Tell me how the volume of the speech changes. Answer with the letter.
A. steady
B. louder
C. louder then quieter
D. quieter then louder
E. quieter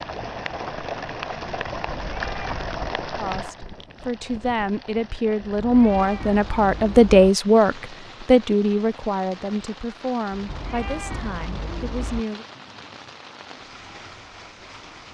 C.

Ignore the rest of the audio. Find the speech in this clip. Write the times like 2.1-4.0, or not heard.
3.1-12.4.